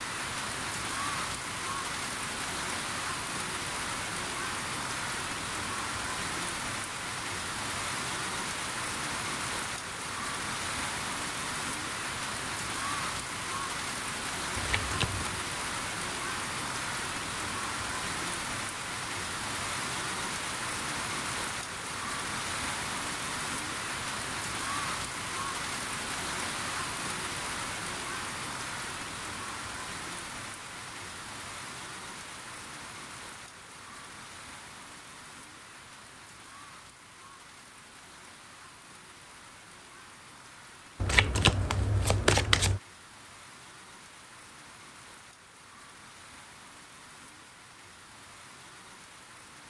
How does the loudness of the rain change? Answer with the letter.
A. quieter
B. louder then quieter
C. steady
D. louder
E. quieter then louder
A.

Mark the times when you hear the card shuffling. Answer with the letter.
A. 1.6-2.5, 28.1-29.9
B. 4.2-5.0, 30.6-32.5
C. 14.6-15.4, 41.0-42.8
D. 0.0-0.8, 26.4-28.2
C.